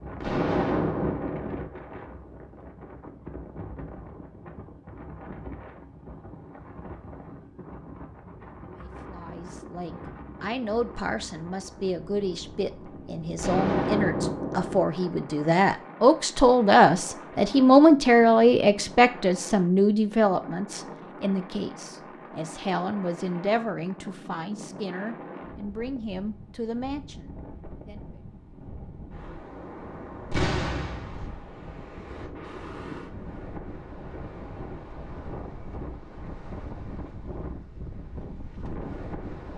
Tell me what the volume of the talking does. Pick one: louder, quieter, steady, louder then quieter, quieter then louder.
louder then quieter.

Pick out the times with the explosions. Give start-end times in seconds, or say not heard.
0.2-1.7, 13.3-14.8, 30.3-31.3.